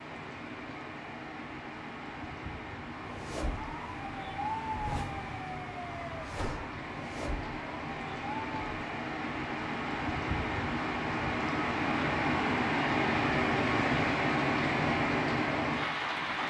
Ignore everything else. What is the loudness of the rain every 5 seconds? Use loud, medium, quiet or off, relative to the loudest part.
quiet, medium, loud, loud.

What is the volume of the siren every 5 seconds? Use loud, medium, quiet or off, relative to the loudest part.
loud, loud, off, off.